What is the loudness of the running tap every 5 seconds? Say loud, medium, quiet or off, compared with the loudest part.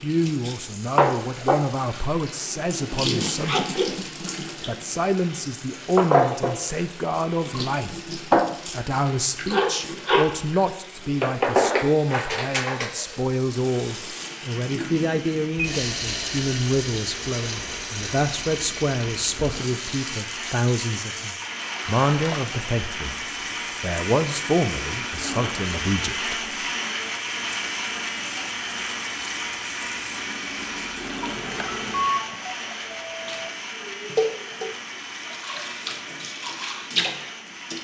loud, loud, loud, medium, medium, quiet, medium, medium.